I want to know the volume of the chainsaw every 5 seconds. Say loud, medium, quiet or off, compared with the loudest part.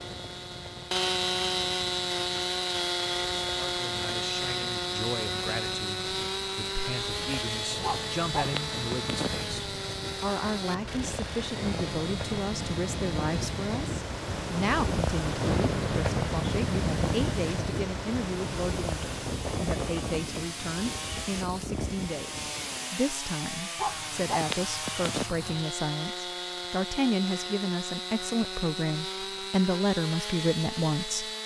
loud, loud, medium, quiet, medium, medium, medium.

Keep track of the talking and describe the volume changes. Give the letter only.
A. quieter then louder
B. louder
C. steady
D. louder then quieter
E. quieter
B.